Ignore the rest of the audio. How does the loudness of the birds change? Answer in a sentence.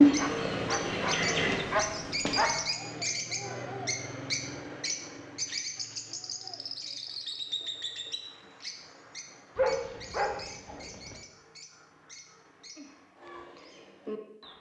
The loudness of the birds goes down.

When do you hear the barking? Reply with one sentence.
You can hear the barking from 0.1 to 2.6 s and from 9.6 to 11.2 s.